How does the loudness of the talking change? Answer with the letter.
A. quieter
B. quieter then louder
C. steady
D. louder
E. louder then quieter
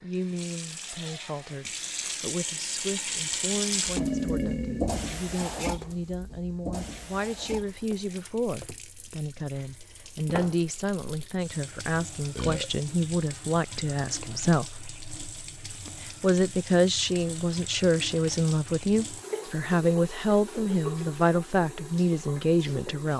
D.